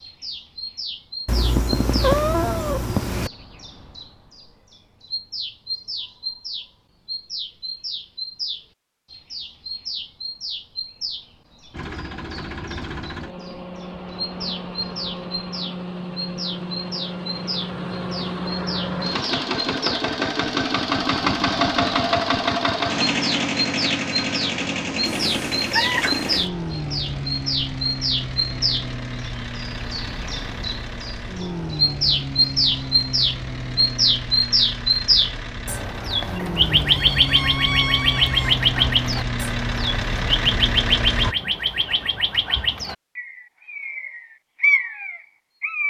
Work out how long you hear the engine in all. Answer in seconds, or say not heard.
30 s.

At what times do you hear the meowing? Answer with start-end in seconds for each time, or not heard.
1.2-3.3, 25.1-26.5, 36.8-38.5.